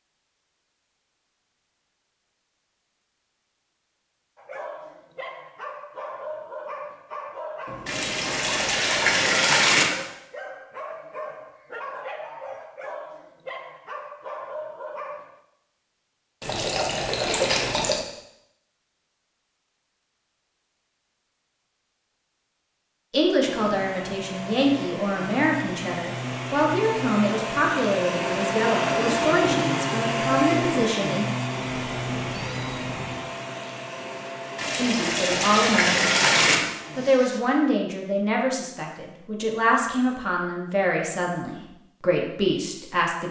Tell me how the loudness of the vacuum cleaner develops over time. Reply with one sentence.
The loudness of the vacuum cleaner goes up, then down.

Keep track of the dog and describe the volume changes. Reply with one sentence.
The volume of the dog stays about the same.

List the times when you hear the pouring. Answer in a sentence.
The pouring can be heard from 7.8 to 9.8 s, from 16.4 to 18.0 s and from 34.5 to 36.6 s.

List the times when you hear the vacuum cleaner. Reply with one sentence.
You can hear the vacuum cleaner from 23.4 to 37.4 s.